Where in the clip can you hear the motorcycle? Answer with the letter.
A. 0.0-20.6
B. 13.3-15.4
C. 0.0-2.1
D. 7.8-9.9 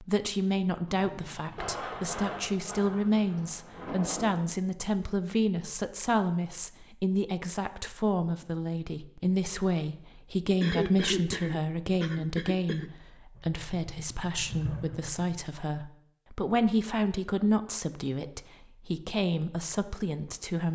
B.